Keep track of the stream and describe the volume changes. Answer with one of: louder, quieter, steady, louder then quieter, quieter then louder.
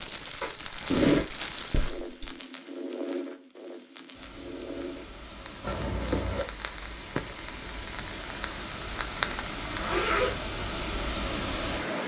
louder.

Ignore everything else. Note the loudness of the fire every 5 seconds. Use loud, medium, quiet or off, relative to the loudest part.
loud, loud, off.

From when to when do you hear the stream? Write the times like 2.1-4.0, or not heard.
4.1-12.0.